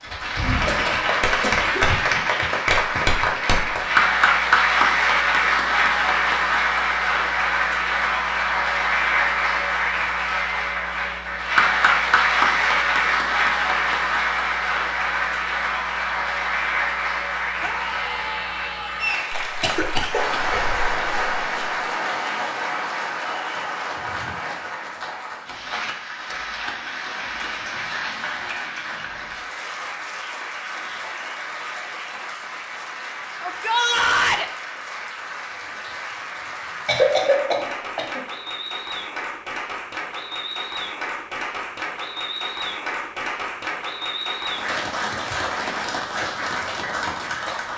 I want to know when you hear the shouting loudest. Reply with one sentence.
The loudest moment of the shouting is at 34 seconds.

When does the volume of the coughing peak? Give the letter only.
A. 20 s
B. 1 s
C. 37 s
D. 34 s
C.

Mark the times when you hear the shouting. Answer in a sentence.
The shouting can be heard from 17.6 to 19.2 s and from 33.4 to 34.5 s.